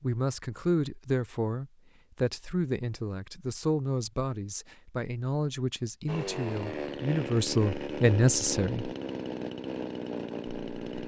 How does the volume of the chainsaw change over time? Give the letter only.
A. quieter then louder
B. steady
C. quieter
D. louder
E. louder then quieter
B.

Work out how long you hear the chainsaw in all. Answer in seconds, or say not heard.
5 s.